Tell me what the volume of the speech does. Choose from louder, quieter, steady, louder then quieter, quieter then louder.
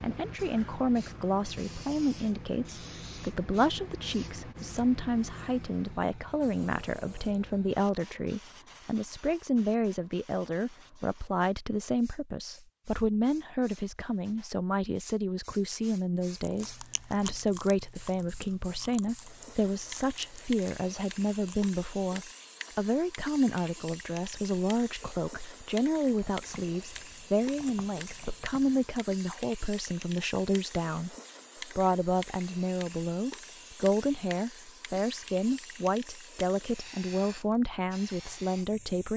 steady.